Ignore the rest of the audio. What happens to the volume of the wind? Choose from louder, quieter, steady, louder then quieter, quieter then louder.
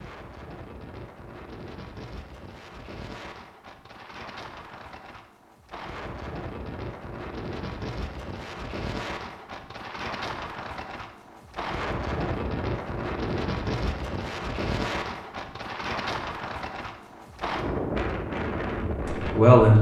louder.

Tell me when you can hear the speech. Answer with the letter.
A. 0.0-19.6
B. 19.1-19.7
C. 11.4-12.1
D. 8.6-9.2
B.